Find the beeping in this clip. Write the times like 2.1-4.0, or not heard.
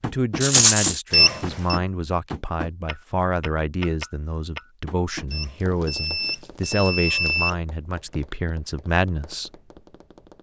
1.1-1.8, 5.3-7.5.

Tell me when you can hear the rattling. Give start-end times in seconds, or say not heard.
0.4-0.9, 5.6-7.5.